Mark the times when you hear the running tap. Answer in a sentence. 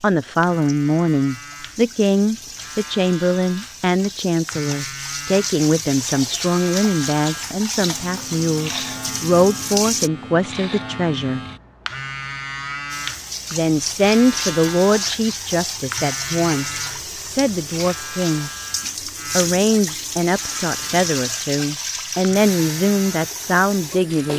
You can hear the running tap from 0.0 to 10.1 s and from 12.9 to 24.3 s.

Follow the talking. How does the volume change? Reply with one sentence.
The loudness of the talking stays about the same.